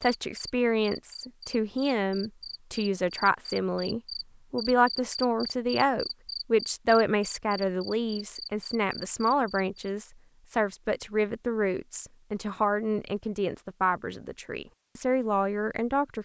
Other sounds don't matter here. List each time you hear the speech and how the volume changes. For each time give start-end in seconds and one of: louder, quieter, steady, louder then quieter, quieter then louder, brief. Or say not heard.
0.0-16.2 steady.